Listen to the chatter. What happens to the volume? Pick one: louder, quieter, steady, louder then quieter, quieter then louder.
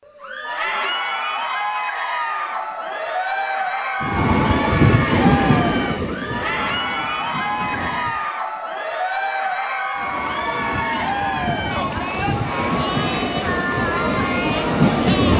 steady.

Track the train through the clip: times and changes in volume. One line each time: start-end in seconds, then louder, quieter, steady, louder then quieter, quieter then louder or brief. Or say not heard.
4.0-8.2 quieter
9.9-15.3 louder.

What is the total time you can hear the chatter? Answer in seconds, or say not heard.
15 s.